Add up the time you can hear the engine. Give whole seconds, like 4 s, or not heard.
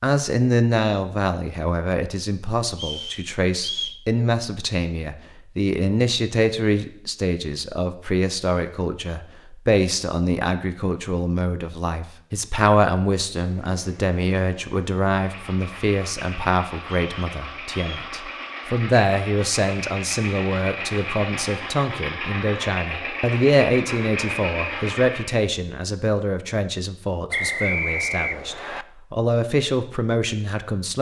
12 s.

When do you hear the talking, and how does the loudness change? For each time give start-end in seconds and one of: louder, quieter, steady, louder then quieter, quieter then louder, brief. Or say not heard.
0.0-30.9 steady.